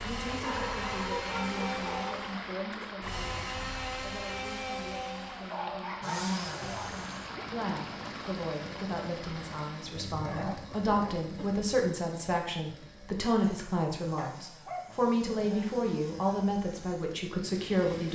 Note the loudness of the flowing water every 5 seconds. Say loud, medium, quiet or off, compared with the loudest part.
loud, loud, off, off.